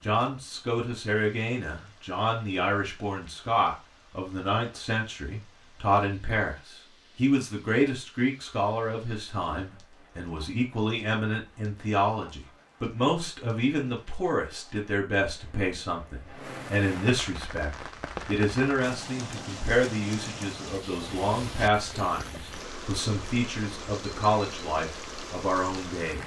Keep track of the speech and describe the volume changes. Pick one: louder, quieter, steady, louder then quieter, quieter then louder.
steady.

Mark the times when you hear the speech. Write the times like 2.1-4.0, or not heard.
0.0-26.2.